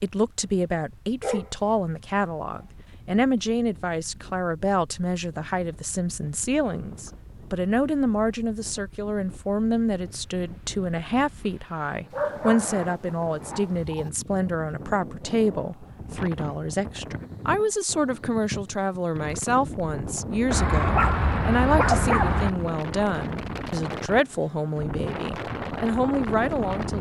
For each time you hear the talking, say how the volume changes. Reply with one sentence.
The talking can be heard from 0.0 to 26.9 s, at a steady volume.